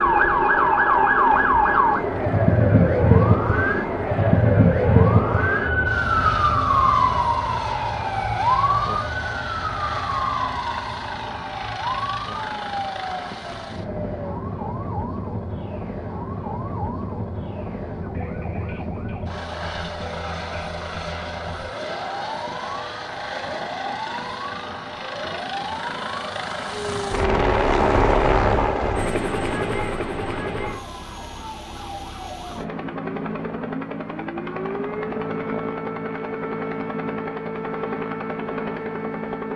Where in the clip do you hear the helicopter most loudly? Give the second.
28 s.